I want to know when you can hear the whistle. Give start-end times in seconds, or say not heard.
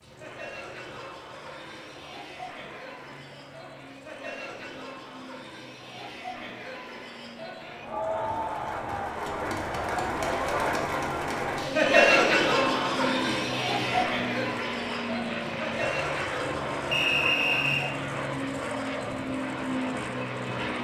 16.9-17.9.